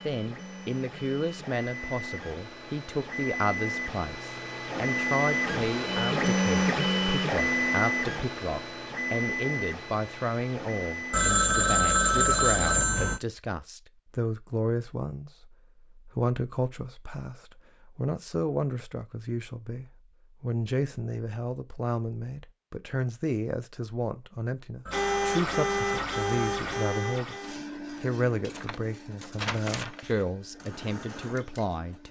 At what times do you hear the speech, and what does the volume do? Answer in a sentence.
The speech can be heard from 0.1 to 32.0 s, at a steady volume.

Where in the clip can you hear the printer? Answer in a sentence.
The printer can be heard from 0.0 to 11.3 s and from 24.9 to 32.0 s.